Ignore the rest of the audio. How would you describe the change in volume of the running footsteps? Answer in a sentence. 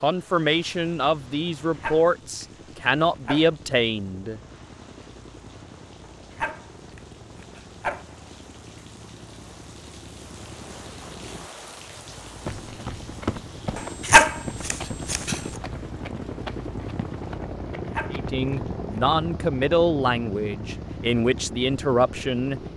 The loudness of the running footsteps goes down.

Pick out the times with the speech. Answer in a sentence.
The speech can be heard from 0.0 to 4.4 s and from 18.1 to 22.6 s.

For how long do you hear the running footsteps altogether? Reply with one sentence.
You can hear the running footsteps for 6 seconds altogether.